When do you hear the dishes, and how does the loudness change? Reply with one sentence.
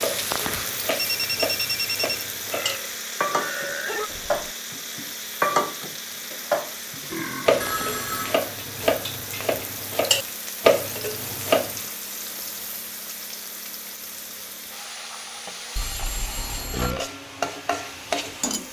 You can hear the dishes from 0.0 to 11.8 s, getting louder.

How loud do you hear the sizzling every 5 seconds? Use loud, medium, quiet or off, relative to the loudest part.
loud, medium, medium, loud.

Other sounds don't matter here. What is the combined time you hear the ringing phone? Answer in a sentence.
The ringing phone can be heard for 3 seconds in total.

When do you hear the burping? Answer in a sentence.
You can hear the burping from 2.5 to 4.5 s, from 7.0 to 8.5 s and from 16.7 to 17.1 s.